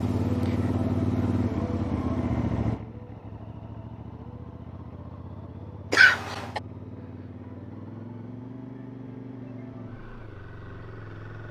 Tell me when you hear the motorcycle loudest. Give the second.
1 s.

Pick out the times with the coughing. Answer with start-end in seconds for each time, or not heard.
5.9-6.6.